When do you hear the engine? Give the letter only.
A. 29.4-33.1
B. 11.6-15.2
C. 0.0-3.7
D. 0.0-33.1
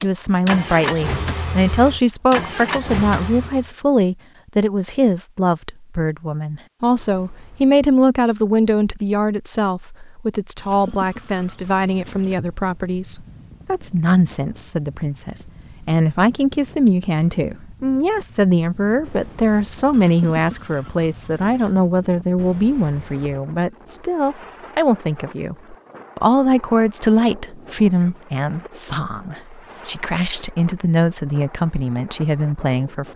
C.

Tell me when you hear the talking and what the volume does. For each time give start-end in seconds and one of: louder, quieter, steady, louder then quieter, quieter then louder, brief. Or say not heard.
0.0-33.1 steady.